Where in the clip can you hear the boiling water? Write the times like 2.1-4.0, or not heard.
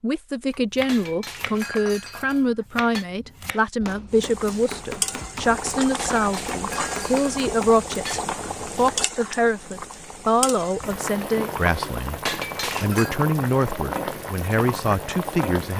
4.1-15.7.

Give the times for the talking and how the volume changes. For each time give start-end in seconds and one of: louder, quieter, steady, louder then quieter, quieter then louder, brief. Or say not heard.
0.0-15.7 steady.